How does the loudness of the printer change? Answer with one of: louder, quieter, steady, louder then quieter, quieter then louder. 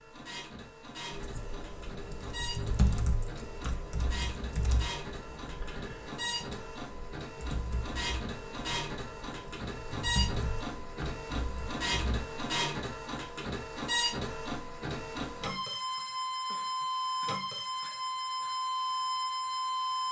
louder.